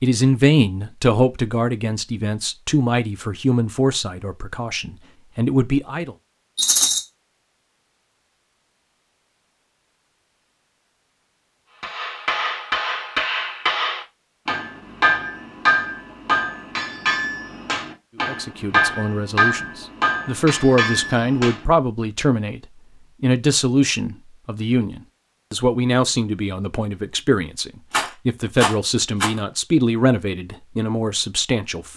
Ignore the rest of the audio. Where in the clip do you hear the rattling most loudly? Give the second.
7 s.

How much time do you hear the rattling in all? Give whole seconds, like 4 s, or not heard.
2 s.